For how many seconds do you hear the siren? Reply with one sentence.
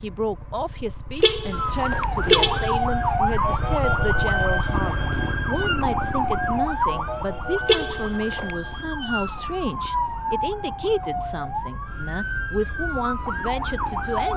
You can hear the siren for 13 seconds altogether.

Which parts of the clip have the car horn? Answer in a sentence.
The car horn can be heard from 1.2 to 2.7 s and from 7.7 to 8.6 s.